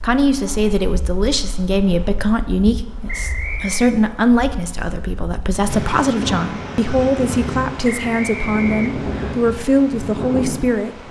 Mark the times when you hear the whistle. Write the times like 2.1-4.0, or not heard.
3.0-3.9, 7.8-9.3.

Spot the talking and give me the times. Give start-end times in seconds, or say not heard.
0.0-10.9.